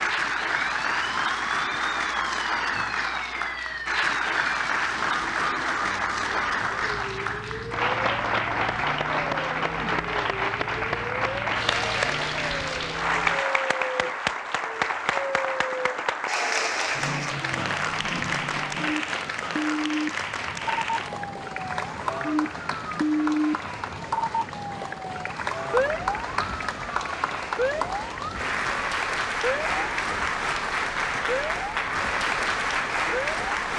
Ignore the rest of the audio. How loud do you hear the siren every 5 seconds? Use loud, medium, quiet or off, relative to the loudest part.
medium, medium, medium, loud, loud, loud, medium.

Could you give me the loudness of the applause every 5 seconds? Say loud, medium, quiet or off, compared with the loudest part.
loud, loud, loud, loud, medium, loud, loud.